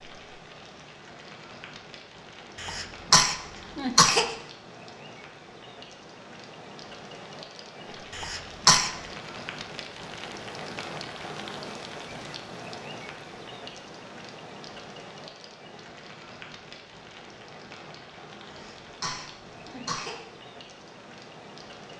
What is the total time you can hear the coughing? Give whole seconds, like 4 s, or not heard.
4 s.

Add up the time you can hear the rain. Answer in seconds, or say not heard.
22 s.